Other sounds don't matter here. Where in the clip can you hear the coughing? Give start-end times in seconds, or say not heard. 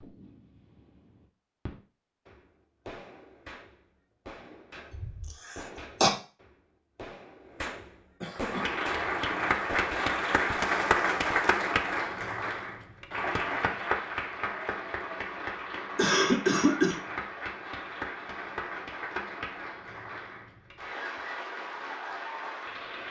5.0-6.1, 8.2-8.8, 15.9-16.9.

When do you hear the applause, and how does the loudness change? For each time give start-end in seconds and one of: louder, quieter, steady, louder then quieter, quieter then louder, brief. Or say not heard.
8.3-23.0 quieter.